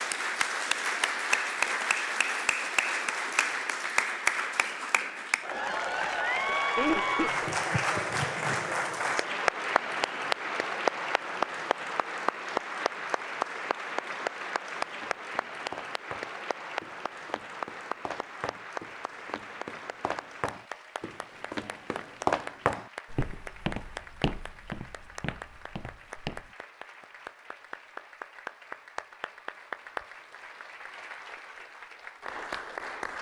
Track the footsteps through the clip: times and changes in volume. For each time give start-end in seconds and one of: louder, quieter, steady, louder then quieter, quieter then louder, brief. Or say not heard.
15.0-26.5 louder then quieter.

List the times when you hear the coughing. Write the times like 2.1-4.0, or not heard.
5.5-7.5.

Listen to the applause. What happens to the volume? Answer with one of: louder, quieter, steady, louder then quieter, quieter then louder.
quieter.